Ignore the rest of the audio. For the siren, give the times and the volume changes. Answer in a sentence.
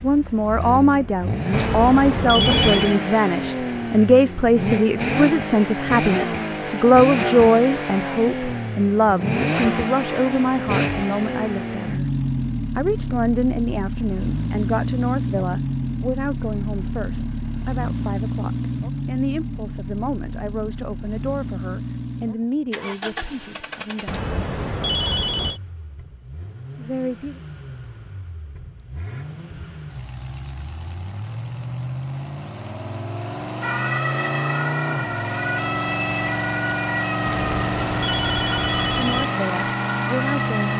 The siren can be heard from 33.6 to 40.7 s, at a steady volume.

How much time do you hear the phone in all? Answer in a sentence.
You can hear the phone for 5 seconds altogether.